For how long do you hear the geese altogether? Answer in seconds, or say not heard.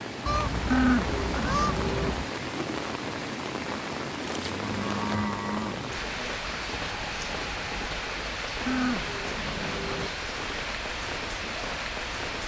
3 s.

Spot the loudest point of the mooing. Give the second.
1 s.